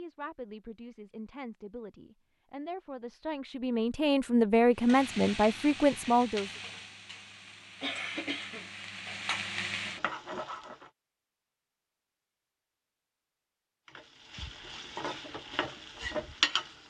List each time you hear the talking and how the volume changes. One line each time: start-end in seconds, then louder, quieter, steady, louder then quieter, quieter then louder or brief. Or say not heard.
0.0-6.5 louder.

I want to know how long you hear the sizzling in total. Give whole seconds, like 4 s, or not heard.
9 s.